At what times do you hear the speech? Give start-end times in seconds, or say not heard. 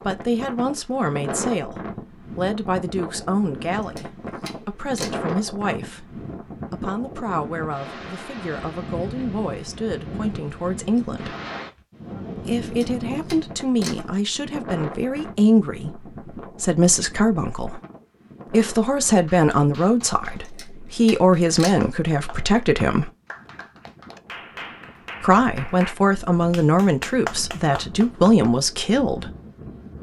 0.1-11.3, 12.3-17.8, 18.5-23.1, 25.2-29.3.